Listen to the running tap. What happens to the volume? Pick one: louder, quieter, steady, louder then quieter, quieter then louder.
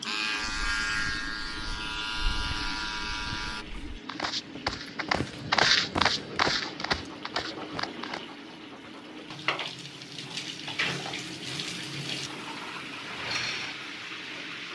louder.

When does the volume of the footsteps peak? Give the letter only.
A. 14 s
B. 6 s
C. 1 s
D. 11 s
B.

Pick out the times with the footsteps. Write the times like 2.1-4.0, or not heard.
0.3-8.2.